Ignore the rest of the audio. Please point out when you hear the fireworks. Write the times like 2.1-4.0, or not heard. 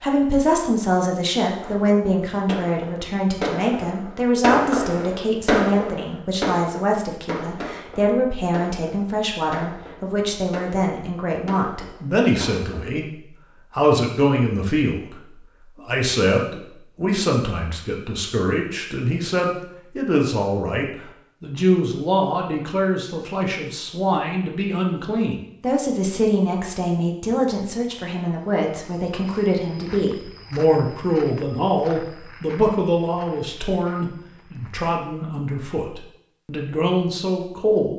1.6-12.9.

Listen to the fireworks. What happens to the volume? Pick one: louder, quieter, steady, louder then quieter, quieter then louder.
louder then quieter.